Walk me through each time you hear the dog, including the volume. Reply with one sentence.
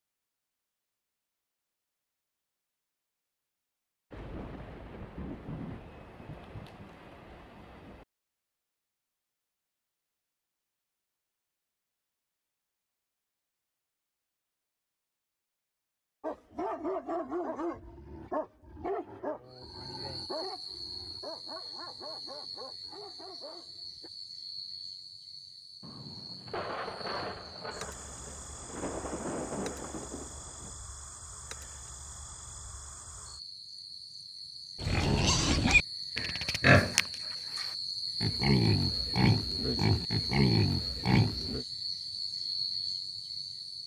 The dog can be heard from 16.2 to 24.1 s, getting quieter.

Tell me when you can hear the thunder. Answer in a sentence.
You can hear the thunder from 4.1 to 8.1 s and from 25.8 to 30.8 s.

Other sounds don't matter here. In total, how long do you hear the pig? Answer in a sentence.
The pig can be heard for 7 seconds in total.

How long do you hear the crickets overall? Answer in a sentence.
You can hear the crickets for 24 seconds altogether.